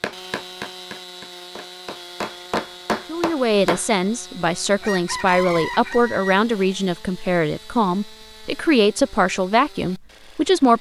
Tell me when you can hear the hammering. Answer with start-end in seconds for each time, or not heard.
0.0-3.9.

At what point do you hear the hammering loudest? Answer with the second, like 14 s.
3 s.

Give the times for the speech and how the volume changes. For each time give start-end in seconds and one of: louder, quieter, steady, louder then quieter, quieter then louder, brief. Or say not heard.
3.0-10.7 steady.